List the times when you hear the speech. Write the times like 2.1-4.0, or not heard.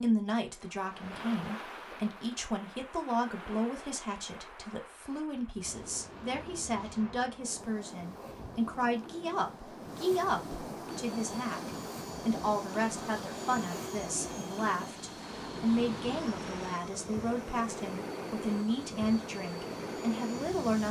0.0-20.8.